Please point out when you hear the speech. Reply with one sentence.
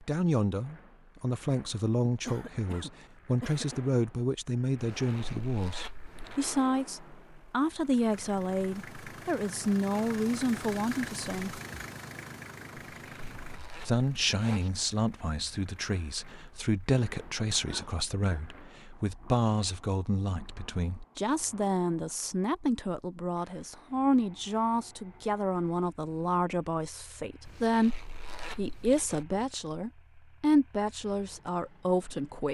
You can hear the speech from 0.0 to 11.6 s and from 13.8 to 32.4 s.